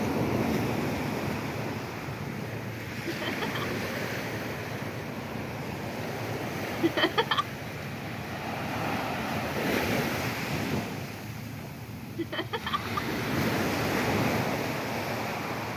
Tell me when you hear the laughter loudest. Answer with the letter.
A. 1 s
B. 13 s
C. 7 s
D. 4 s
C.